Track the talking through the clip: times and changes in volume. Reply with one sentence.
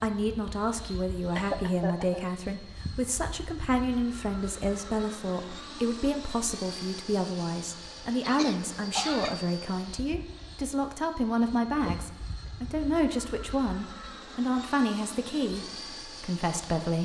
The talking can be heard from 0.0 to 16.9 s, at a steady volume.